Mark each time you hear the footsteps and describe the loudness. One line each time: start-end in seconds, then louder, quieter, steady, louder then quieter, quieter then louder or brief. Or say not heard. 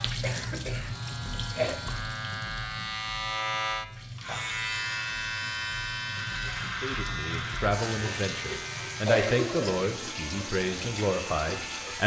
not heard.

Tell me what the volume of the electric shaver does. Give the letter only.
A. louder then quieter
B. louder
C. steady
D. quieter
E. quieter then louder
A.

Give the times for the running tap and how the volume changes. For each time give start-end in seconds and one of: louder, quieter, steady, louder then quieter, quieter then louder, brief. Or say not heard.
0.0-12.0 quieter then louder.